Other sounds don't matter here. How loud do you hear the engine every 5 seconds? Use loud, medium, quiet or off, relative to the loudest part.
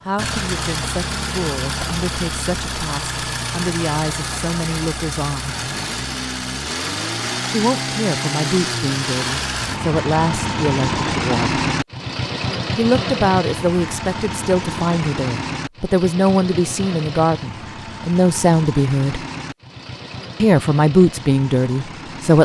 loud, loud, loud, medium, medium.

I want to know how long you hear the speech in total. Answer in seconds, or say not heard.
18 s.